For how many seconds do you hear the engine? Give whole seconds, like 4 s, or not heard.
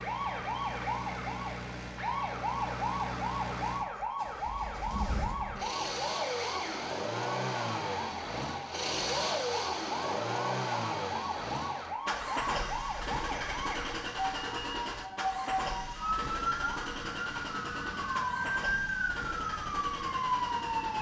21 s.